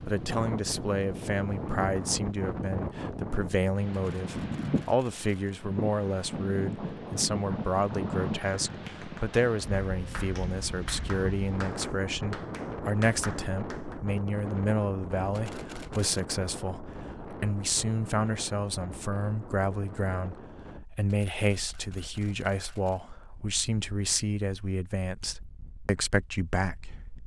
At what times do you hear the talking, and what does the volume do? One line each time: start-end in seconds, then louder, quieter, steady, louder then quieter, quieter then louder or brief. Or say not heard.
0.0-27.2 steady.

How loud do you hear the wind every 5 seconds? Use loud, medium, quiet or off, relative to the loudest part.
loud, loud, loud, medium, quiet, quiet.